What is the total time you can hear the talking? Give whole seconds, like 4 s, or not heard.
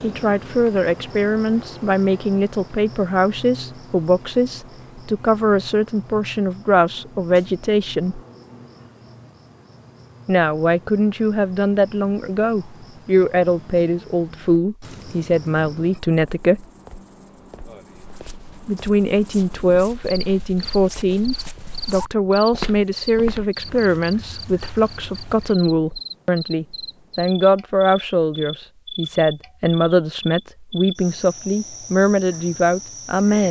29 s.